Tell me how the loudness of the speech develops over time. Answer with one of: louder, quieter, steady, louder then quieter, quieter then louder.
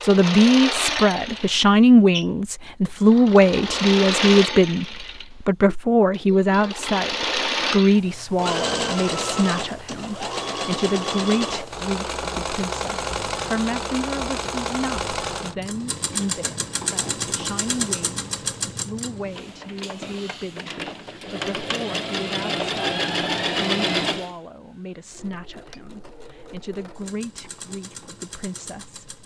quieter.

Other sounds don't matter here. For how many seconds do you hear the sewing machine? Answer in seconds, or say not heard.
29 s.